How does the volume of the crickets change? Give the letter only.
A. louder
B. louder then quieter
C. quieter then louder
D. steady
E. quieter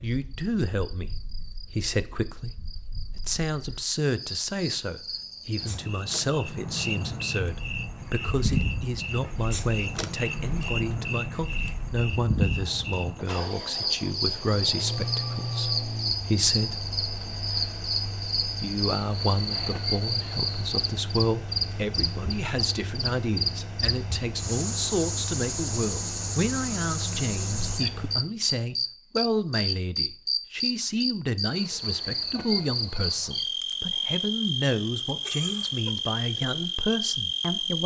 A.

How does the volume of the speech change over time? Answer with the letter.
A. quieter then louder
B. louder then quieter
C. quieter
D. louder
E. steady
E.